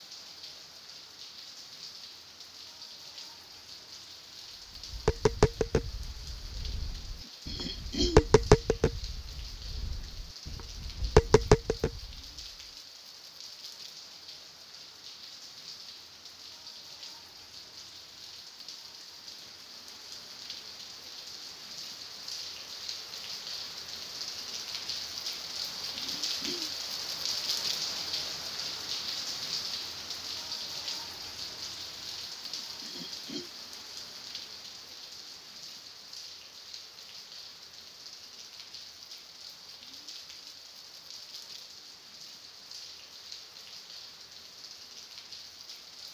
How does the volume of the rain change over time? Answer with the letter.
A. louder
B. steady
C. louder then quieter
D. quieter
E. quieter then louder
C.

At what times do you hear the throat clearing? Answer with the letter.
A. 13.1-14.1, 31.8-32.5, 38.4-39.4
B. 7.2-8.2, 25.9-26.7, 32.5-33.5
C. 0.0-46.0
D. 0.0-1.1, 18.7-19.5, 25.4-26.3
B.